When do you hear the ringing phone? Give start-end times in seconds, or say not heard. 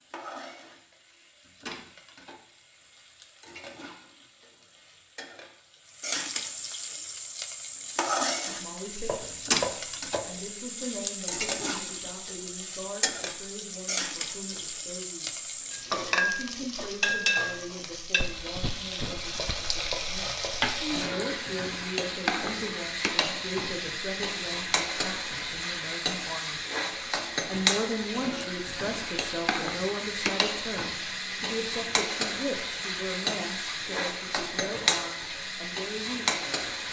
not heard.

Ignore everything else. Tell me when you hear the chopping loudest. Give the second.
10 s.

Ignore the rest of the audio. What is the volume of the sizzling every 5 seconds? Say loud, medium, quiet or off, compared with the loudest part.
quiet, loud, loud, loud, loud, loud, loud, loud.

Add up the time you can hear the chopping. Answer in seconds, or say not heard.
3 s.